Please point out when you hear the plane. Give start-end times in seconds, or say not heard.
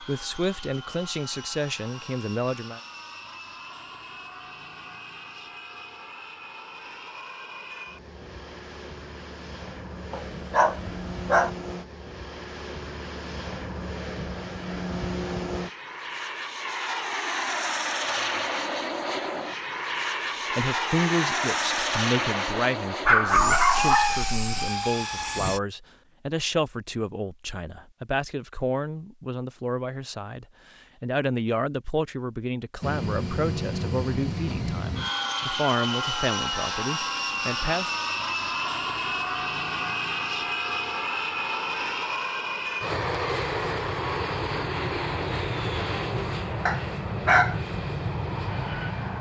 0.0-25.6, 32.8-49.1.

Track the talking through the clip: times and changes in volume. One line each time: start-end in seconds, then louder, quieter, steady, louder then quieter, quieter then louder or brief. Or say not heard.
0.0-2.8 brief
20.5-37.9 steady.